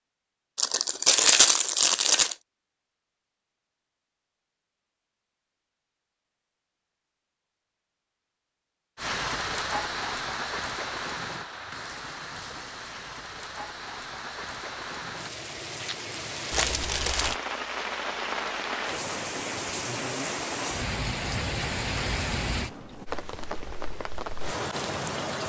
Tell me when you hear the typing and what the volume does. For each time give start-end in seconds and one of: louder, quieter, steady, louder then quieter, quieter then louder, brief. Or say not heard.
not heard.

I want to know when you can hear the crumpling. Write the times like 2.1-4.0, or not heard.
0.6-2.4, 16.5-17.4.